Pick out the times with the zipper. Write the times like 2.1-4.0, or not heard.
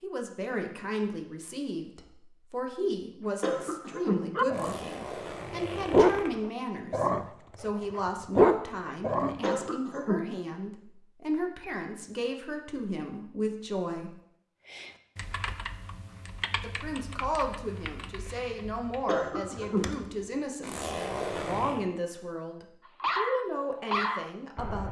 4.5-6.3, 20.6-21.9.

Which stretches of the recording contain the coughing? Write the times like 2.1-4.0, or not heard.
3.4-4.2, 9.4-10.2, 19.1-19.9.